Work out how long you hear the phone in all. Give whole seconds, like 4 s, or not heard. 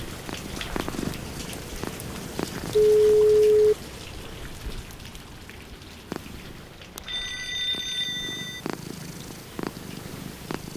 2 s.